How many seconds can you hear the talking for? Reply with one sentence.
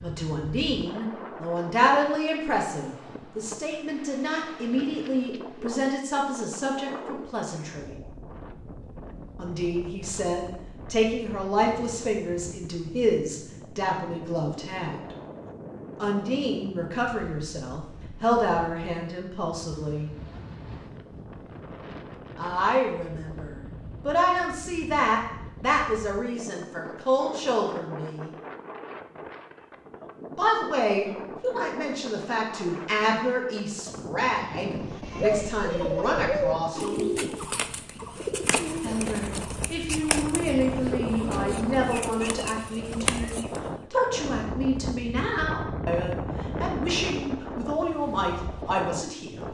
You can hear the talking for 41 seconds altogether.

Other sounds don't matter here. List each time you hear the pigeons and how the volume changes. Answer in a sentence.
The pigeons can be heard from 34.8 to 43.7 s, getting quieter.